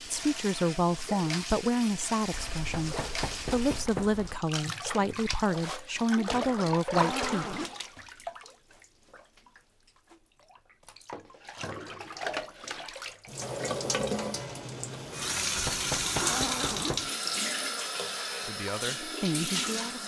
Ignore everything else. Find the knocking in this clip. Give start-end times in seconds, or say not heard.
2.6-4.2, 15.6-17.1.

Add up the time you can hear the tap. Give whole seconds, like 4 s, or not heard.
20 s.